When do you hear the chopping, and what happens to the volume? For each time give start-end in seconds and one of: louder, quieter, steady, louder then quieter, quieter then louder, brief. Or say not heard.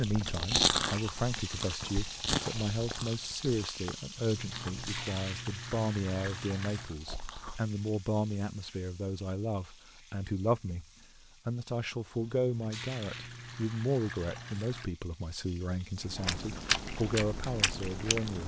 not heard.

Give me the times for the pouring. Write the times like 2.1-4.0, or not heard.
4.3-6.9, 12.2-14.9.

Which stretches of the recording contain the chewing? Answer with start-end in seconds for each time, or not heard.
0.0-7.7, 16.0-18.4.